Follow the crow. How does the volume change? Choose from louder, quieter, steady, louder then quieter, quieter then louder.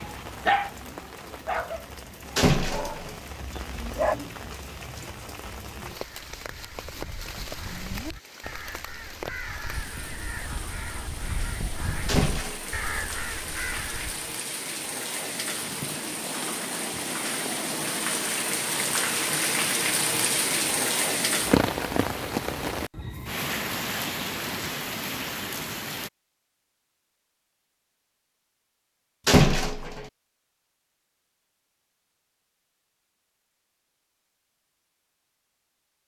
louder.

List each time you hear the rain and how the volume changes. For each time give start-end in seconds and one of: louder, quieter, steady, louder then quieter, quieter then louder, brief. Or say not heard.
0.0-26.1 louder.